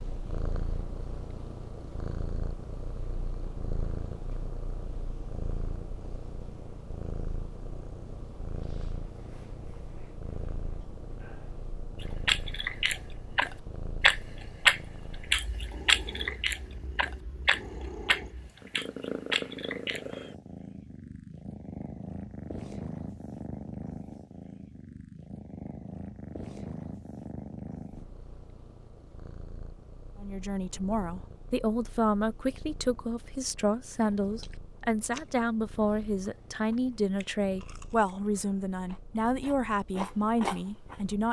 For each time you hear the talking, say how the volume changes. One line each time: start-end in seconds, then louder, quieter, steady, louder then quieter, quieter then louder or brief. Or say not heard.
30.2-41.2 steady.